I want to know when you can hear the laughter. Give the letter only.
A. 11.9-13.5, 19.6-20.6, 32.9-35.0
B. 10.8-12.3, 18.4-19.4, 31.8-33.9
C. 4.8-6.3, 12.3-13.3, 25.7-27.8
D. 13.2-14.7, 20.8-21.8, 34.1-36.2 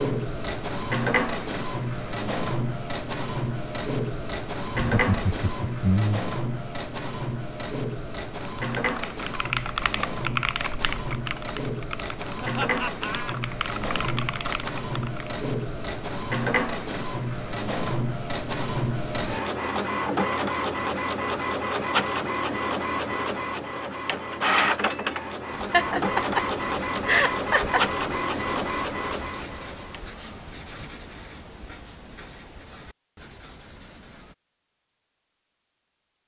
C.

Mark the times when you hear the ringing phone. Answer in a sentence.
You can't hear the ringing phone here.